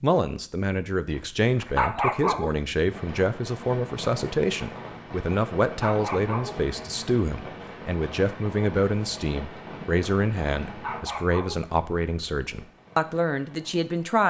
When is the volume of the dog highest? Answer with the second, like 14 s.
2 s.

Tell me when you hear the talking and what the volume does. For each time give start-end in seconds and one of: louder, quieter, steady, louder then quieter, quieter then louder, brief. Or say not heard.
0.0-14.2 steady.